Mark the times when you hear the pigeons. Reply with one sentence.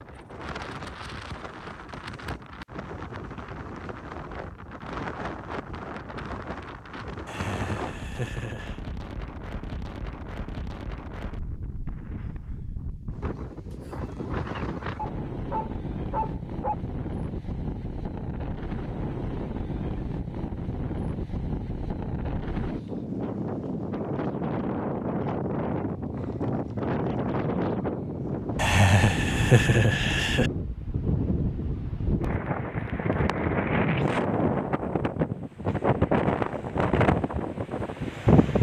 The pigeons can't be heard in this clip.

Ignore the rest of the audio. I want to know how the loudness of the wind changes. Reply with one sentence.
The volume of the wind goes up.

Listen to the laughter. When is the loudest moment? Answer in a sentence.
The volume of the laughter peaks at 30 seconds.